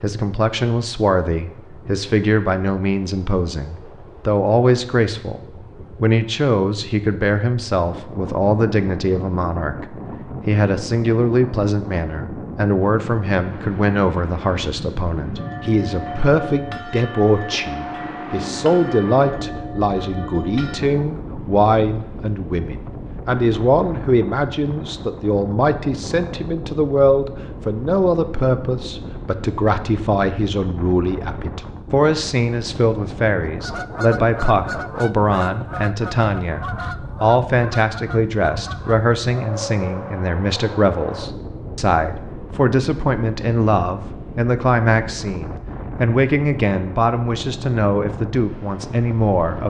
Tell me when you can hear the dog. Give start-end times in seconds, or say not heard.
not heard.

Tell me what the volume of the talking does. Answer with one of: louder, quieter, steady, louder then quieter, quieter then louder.
steady.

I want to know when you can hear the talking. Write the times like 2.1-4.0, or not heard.
0.0-5.4, 6.0-49.6.